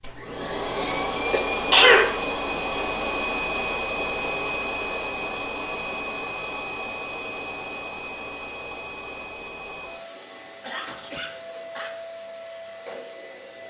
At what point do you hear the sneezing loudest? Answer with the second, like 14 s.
2 s.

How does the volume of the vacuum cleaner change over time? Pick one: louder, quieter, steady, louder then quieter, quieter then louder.
quieter.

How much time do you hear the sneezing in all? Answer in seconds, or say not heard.
3 s.